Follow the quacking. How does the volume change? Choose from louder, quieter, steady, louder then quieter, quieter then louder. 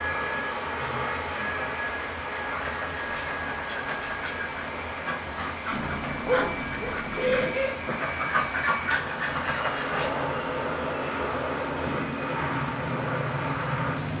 louder.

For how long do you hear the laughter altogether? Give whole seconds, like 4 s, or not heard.
2 s.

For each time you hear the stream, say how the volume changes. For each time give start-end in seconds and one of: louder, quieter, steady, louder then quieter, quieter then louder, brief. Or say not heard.
0.0-14.1 steady.